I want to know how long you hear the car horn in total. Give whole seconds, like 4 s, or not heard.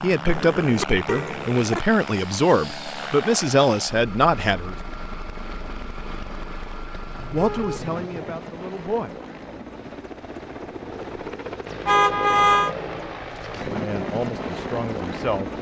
4 s.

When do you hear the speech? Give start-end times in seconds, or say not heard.
0.0-4.8, 7.3-9.2, 13.7-15.5.